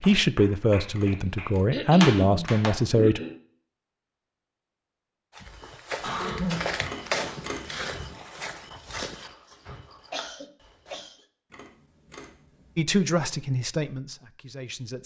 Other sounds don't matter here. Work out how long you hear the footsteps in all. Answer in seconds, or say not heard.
6 s.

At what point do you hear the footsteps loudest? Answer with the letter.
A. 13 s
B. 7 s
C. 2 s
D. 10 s
B.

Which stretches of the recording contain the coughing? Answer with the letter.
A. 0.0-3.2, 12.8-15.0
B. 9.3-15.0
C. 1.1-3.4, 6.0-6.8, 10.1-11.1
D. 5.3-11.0
C.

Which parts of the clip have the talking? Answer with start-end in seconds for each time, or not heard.
0.0-3.2, 12.8-15.0.